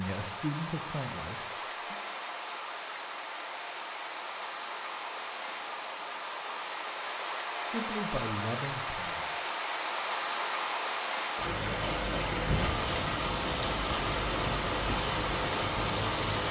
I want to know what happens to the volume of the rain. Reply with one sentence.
The loudness of the rain goes up.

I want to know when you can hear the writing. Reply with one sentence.
You can't hear the writing here.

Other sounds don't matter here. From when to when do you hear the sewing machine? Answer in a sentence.
You can't hear the sewing machine here.